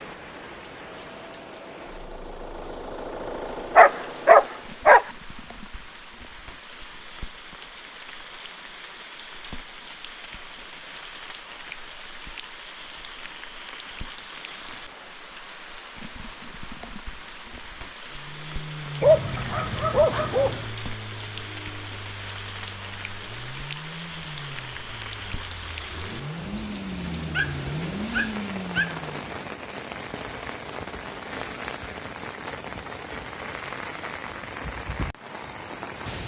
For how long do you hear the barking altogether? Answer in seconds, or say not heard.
5 s.